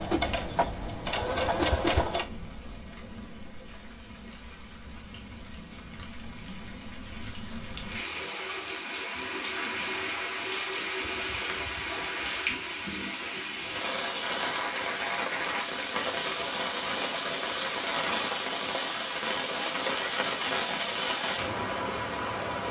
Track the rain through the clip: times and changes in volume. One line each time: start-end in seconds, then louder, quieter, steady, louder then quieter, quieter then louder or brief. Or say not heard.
0.0-22.6 louder.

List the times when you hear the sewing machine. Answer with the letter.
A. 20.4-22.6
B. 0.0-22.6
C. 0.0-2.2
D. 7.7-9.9
C.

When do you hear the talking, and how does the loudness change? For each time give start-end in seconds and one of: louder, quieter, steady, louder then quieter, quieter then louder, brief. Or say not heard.
not heard.